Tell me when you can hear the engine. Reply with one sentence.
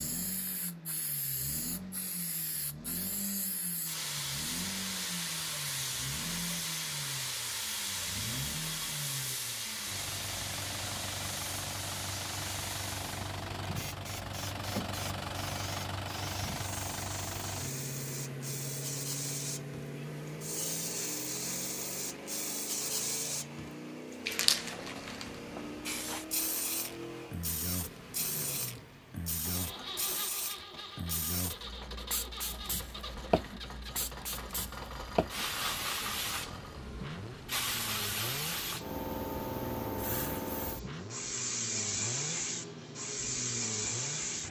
The engine can be heard from 0.0 to 44.4 s.